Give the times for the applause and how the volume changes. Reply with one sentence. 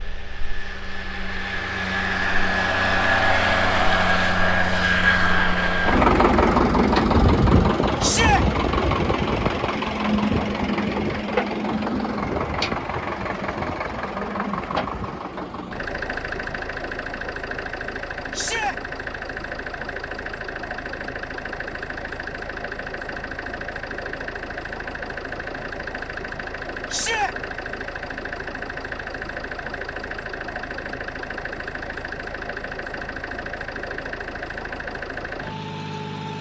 The applause can't be heard in this clip.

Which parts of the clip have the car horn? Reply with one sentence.
The car horn can't be heard in this clip.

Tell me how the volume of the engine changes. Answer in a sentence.
The volume of the engine goes down.